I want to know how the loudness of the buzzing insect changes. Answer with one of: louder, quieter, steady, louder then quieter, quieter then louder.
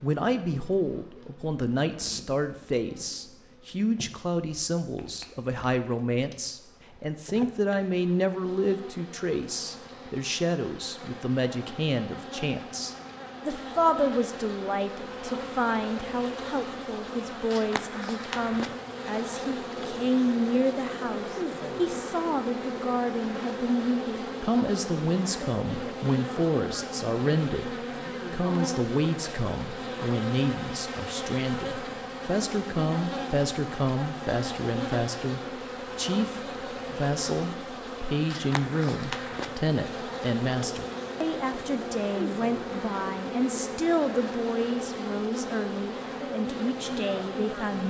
louder.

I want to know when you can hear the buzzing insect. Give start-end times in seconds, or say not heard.
0.0-47.8.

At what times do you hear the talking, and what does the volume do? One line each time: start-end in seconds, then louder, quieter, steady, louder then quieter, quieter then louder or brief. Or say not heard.
0.0-47.8 steady.